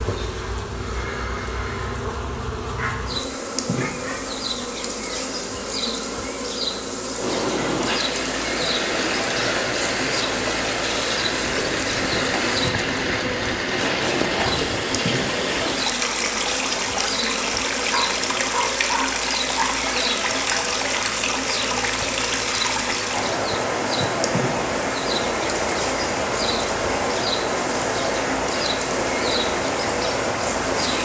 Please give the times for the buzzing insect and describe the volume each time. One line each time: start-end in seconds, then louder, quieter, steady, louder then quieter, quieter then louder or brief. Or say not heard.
0.0-31.0 steady.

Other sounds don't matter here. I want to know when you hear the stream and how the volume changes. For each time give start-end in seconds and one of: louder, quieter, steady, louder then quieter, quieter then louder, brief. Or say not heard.
7.2-31.0 steady.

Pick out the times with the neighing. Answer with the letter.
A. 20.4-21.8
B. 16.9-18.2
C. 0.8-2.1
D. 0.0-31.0
C.